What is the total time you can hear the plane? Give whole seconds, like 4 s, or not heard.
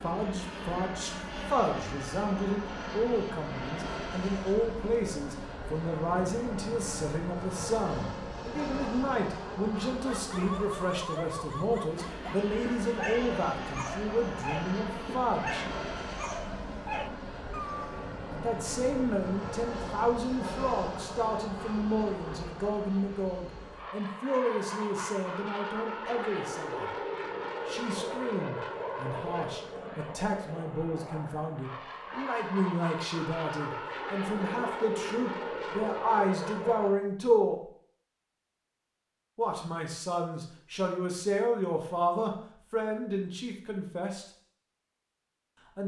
37 s.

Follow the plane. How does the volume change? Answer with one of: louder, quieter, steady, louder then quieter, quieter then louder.
steady.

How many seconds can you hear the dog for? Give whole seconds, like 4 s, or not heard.
8 s.